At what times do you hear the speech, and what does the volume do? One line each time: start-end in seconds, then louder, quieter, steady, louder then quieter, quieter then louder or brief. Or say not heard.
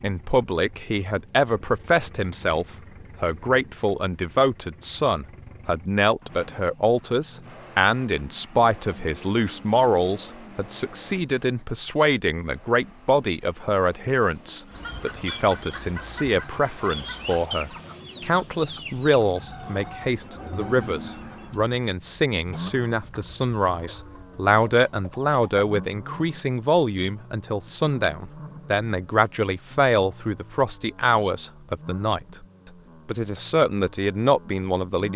0.0-32.5 steady
33.0-35.1 brief.